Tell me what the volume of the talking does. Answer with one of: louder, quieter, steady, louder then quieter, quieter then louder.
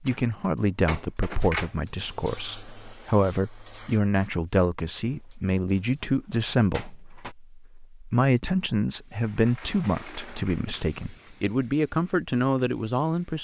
steady.